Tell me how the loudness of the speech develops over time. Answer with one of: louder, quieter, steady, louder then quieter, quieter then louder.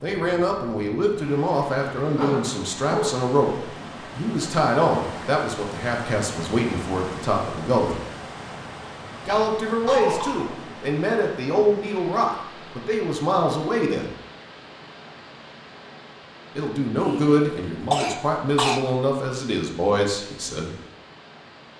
steady.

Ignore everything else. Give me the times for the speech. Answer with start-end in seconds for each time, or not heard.
0.0-8.0, 9.2-14.1, 16.6-20.8.